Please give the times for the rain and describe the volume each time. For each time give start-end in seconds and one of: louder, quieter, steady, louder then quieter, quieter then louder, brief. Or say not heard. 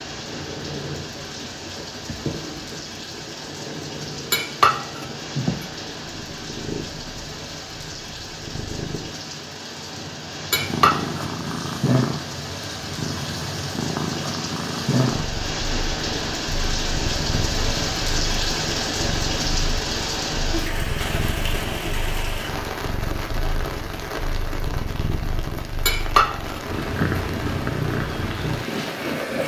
0.0-29.4 louder then quieter.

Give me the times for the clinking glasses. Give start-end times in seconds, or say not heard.
4.3-5.7, 10.5-11.2, 25.9-27.2.